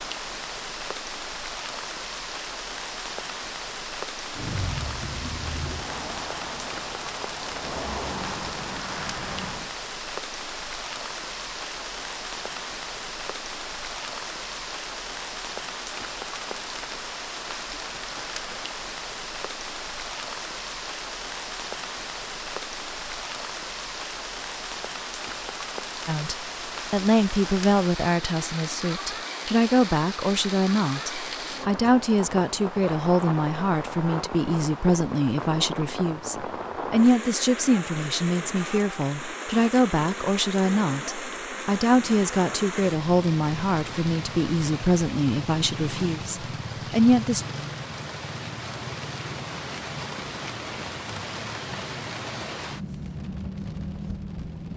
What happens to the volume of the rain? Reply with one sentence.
The volume of the rain stays about the same.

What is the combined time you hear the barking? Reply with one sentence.
You can't hear the barking here.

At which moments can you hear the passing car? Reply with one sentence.
You can hear the passing car from 4.3 to 9.8 s.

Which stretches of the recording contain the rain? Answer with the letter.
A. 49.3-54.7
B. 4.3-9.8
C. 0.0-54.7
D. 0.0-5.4
C.